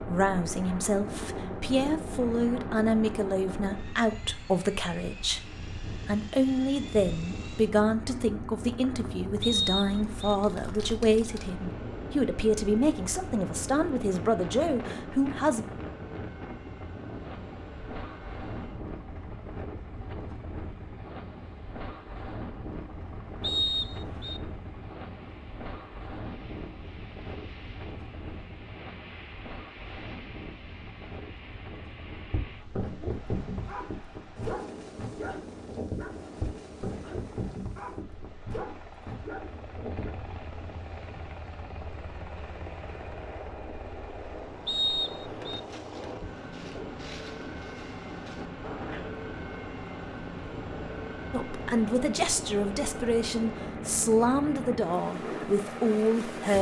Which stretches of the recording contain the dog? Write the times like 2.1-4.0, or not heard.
32.3-40.1.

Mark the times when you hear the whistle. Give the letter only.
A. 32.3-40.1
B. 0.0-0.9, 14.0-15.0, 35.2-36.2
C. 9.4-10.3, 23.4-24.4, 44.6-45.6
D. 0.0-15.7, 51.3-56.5
C.